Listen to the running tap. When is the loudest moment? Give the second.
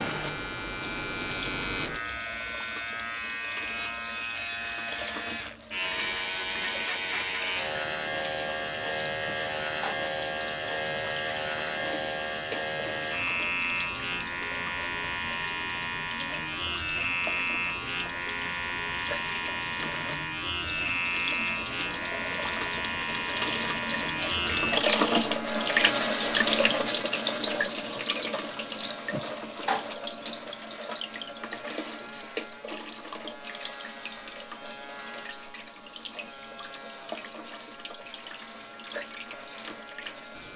25 s.